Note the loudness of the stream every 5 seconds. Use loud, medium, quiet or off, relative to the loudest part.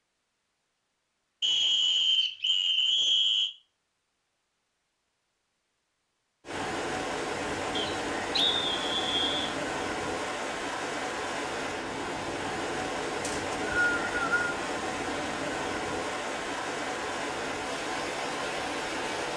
off, loud, loud, loud.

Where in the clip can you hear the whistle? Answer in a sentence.
You can hear the whistle from 1.4 to 3.5 s, from 7.8 to 9.6 s and from 13.2 to 14.4 s.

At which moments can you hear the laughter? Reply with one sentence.
The laughter can't be heard in this clip.